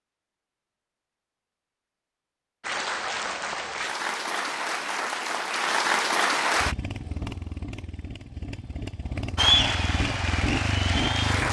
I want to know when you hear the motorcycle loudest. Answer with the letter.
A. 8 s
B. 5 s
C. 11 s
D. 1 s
C.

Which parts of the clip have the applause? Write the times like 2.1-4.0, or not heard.
2.6-6.8, 9.3-11.4.